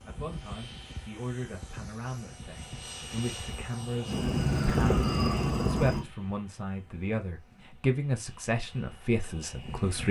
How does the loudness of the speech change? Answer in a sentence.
The loudness of the speech goes up.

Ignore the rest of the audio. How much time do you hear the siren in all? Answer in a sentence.
You can hear the siren for 2 seconds altogether.